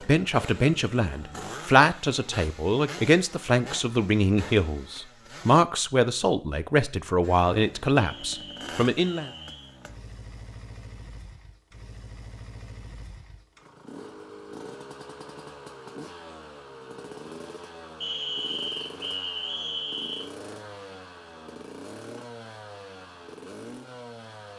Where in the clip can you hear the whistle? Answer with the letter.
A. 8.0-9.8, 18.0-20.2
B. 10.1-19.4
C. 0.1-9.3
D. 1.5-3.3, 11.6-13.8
A.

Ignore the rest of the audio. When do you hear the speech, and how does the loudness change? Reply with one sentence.
You can hear the speech from 0.1 to 9.3 s, at a steady volume.